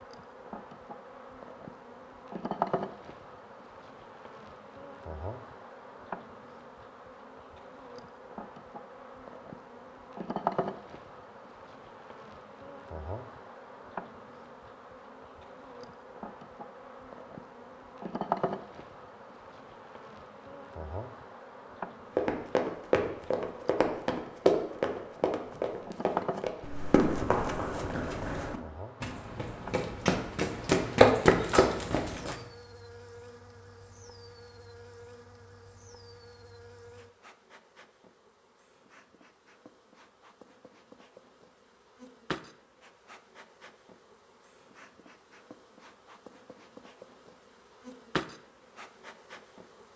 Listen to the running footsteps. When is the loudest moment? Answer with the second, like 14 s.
31 s.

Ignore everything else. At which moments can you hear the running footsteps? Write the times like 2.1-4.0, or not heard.
22.1-32.4.